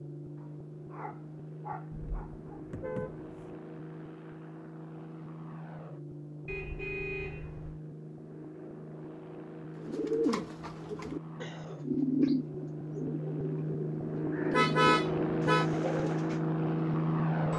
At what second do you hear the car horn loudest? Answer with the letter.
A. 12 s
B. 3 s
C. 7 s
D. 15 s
D.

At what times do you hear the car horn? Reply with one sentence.
You can hear the car horn from 1.9 to 3.5 s, from 6.5 to 7.8 s and from 14.5 to 15.7 s.